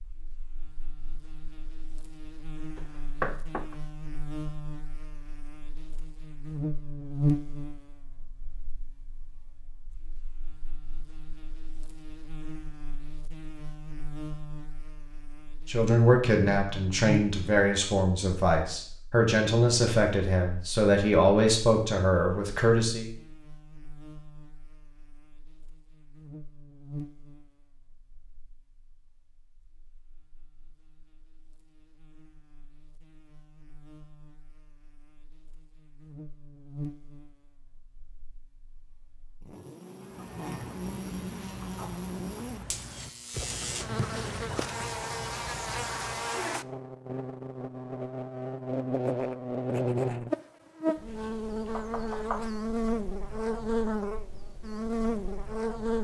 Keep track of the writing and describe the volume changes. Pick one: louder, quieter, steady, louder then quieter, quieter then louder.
louder then quieter.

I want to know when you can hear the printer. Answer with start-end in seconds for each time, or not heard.
not heard.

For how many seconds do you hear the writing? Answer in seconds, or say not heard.
6 s.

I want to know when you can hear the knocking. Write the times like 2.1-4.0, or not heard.
2.8-3.8, 51.7-52.5.